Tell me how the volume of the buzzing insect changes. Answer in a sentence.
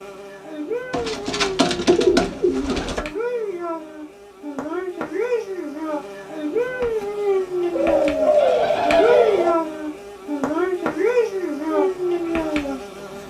The volume of the buzzing insect goes up.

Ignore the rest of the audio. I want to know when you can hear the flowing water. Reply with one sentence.
You can't hear the flowing water here.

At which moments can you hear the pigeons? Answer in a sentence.
The pigeons can be heard from 0.9 to 3.0 s and from 7.7 to 9.6 s.